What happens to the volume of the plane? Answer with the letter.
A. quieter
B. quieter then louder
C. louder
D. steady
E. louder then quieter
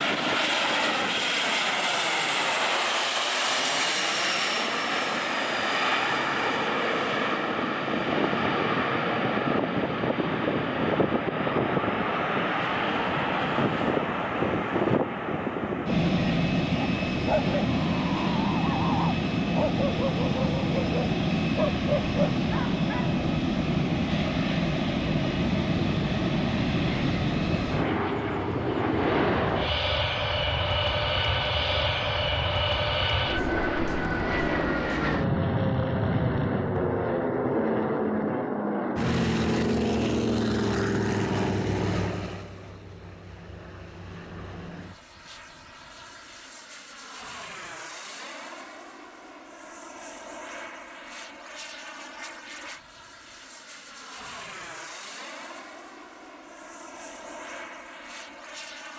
A.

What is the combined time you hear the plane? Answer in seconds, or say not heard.
59 s.